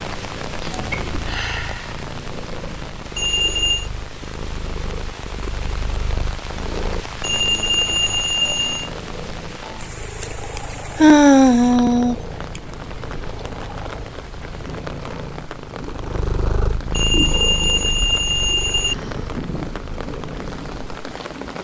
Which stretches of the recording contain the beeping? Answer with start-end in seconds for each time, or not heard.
3.1-3.9, 7.2-8.9, 16.9-18.9.